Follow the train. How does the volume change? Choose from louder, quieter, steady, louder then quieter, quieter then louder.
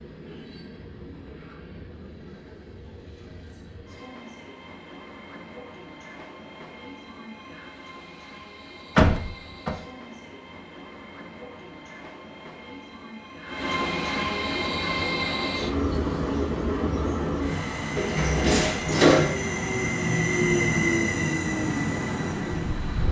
louder.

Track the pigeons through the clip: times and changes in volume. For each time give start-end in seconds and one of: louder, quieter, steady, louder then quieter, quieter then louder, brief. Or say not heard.
not heard.